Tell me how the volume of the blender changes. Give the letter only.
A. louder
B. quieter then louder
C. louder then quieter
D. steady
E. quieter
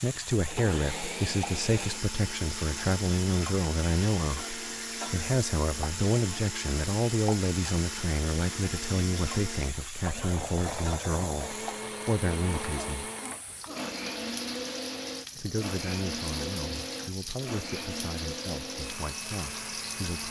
D.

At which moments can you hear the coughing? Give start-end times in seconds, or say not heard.
12.6-13.9.